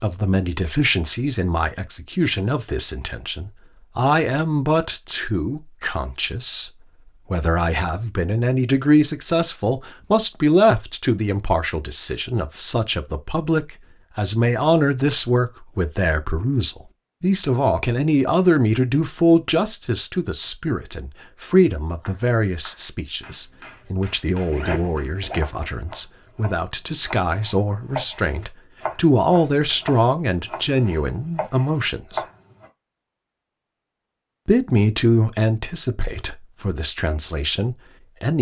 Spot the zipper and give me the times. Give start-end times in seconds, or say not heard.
24.5-25.7.